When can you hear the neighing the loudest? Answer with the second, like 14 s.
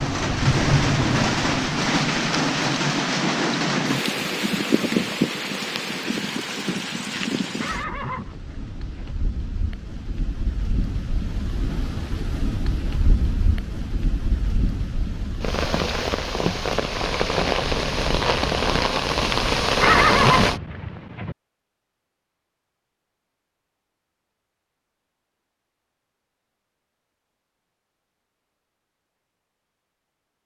20 s.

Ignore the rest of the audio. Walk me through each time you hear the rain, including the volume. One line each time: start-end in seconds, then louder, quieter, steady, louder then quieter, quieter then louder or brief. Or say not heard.
0.0-20.6 quieter then louder.